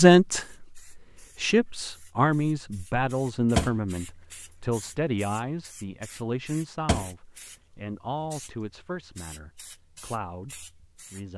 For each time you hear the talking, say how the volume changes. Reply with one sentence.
The talking can be heard from 0.0 to 11.3 s, getting quieter.